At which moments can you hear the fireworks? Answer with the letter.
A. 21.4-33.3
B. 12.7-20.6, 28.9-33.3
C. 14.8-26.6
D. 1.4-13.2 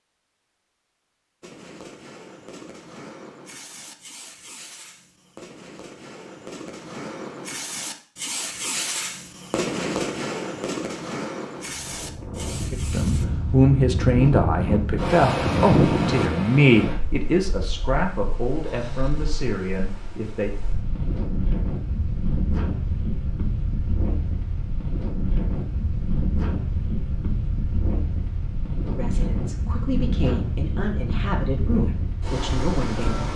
D.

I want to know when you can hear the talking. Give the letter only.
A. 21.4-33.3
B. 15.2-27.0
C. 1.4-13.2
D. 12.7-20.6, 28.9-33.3
D.